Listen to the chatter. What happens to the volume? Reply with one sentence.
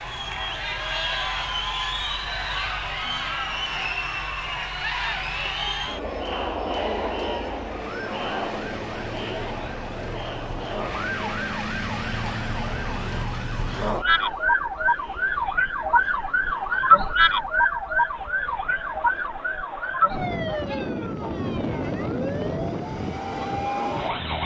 The loudness of the chatter goes down.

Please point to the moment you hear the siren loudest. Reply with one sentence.
The volume of the siren peaks at 17 seconds.